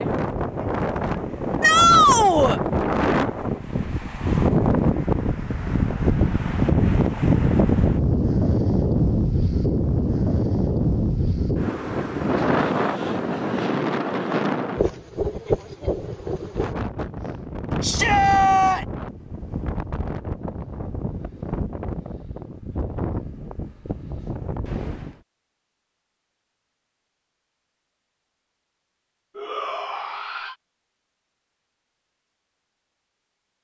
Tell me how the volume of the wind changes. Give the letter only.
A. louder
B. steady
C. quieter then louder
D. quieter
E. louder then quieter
D.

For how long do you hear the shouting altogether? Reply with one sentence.
The shouting can be heard for 3 seconds in total.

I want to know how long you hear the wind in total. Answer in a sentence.
You can hear the wind for 25 seconds altogether.